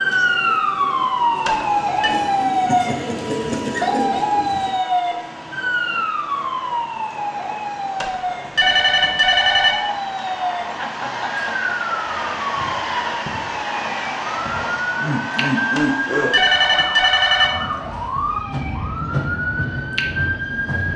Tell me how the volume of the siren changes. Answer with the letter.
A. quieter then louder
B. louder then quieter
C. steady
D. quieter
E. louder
D.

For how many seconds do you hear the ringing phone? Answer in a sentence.
You can hear the ringing phone for 4 seconds altogether.